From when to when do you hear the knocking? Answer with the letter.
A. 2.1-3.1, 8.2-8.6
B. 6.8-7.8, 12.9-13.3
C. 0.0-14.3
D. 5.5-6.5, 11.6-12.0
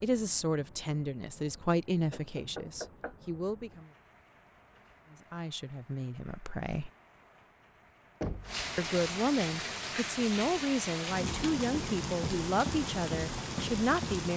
A.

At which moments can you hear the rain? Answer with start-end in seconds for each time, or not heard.
0.0-14.3.